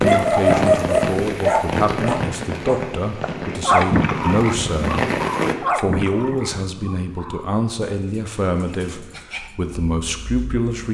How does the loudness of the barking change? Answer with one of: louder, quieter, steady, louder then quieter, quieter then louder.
quieter.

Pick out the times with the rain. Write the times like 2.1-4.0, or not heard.
0.0-5.5.